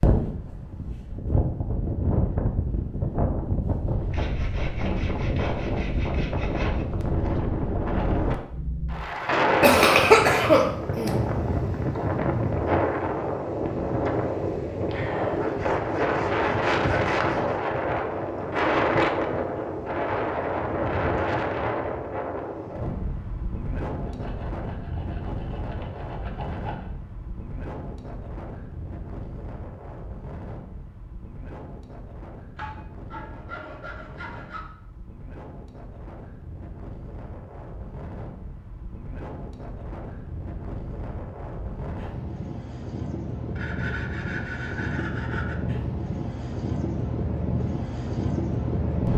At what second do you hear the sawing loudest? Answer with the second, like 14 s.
17 s.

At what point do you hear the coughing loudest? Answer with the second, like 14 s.
10 s.